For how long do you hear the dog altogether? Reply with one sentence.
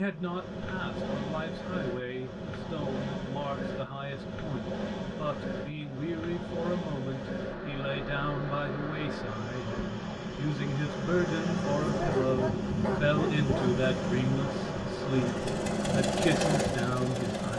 You can hear the dog for 2 seconds altogether.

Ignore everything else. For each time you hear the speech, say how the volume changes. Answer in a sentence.
You can hear the speech from 0.0 to 17.5 s, getting louder.